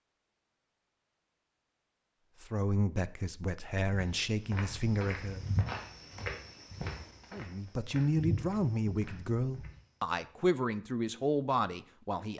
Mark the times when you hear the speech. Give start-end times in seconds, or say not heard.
2.4-5.5, 7.3-12.3.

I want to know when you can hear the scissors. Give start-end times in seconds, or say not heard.
not heard.